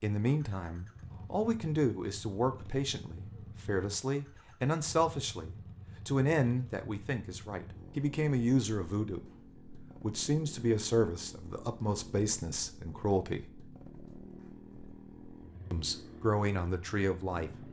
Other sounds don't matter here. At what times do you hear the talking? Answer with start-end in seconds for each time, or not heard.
0.0-9.2, 10.0-13.5, 15.7-17.6.